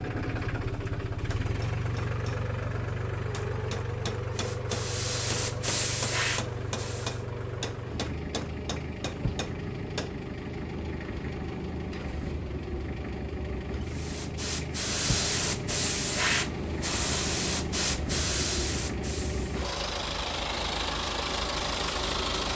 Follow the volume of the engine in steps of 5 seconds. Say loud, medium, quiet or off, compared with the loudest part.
loud, medium, medium, loud, loud.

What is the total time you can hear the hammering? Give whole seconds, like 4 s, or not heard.
8 s.